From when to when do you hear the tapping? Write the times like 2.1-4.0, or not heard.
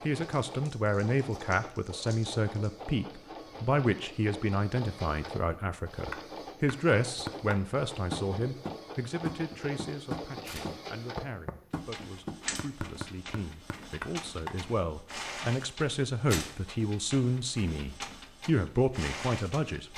5.5-14.6.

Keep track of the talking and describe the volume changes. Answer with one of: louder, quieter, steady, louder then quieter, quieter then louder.
quieter then louder.